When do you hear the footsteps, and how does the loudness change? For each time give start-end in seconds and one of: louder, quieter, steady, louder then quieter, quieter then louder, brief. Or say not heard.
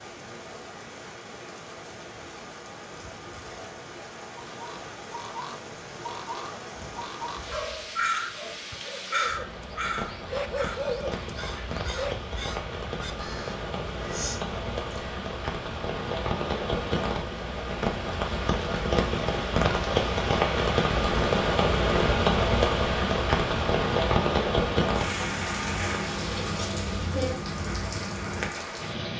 not heard.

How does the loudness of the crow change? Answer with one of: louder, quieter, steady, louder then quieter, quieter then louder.
louder then quieter.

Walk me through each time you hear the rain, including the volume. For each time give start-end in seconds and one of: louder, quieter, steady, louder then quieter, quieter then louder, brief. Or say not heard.
0.0-29.1 louder.